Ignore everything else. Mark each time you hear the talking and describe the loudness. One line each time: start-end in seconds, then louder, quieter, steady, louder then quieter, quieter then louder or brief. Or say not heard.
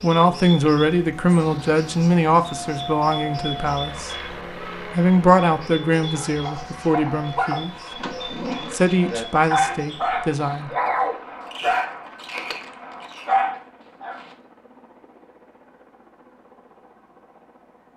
0.0-4.1 quieter
4.9-7.8 brief
8.7-10.7 brief.